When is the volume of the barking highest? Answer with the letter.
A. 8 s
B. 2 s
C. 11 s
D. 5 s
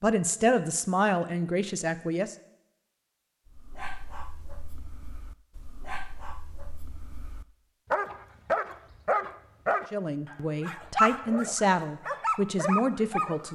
C.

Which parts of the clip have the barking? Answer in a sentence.
You can hear the barking from 3.5 to 13.4 s.